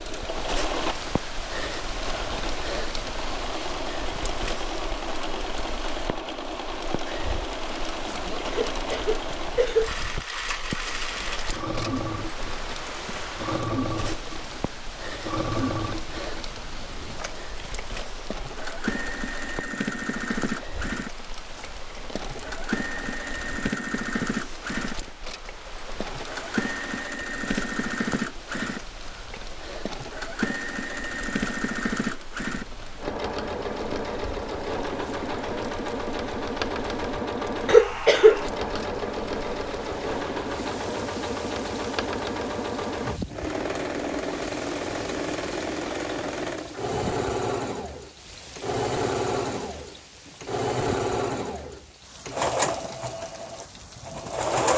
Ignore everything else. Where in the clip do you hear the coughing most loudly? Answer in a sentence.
The loudest moment of the coughing is at 38 seconds.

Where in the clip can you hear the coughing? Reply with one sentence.
The coughing can be heard from 8.5 to 9.9 s and from 37.6 to 38.5 s.